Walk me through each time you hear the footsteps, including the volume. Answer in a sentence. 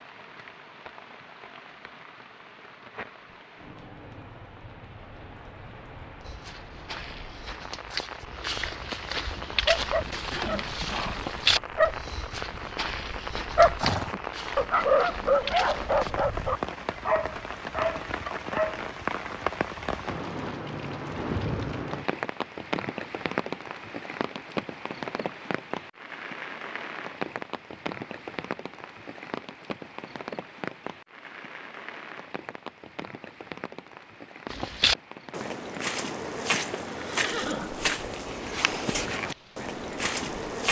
You can hear the footsteps from 6.2 to 16.1 s, getting louder then quieter; and from 34.5 to 40.6 s, at a steady volume.